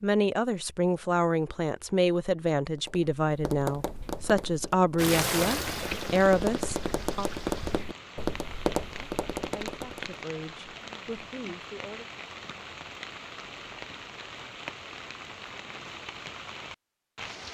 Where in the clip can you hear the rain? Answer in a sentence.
The rain can be heard from 5.0 to 17.5 s.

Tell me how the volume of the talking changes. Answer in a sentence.
The volume of the talking goes down.